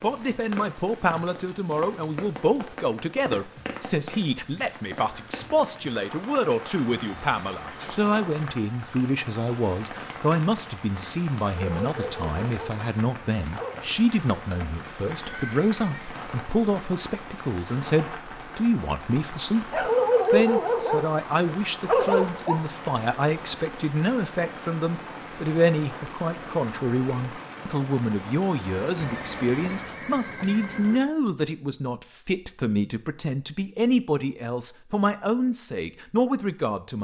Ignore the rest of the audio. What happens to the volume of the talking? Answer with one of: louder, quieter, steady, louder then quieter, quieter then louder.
steady.